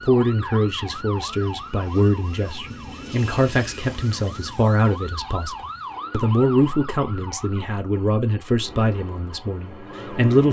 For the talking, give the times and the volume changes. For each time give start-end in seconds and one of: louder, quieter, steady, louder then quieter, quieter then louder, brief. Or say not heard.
0.1-10.4 steady.